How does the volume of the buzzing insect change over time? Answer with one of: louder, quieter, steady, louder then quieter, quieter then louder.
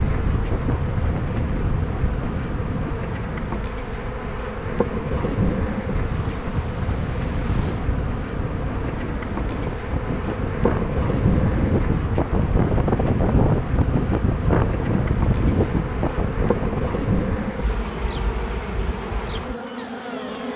steady.